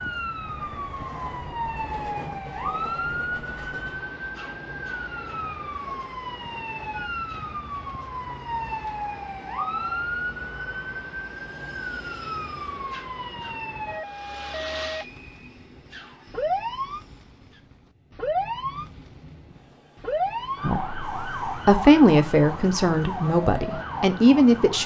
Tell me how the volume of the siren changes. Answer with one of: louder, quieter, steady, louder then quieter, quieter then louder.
steady.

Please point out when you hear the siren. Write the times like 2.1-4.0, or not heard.
0.0-24.8.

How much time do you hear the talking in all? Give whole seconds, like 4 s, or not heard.
4 s.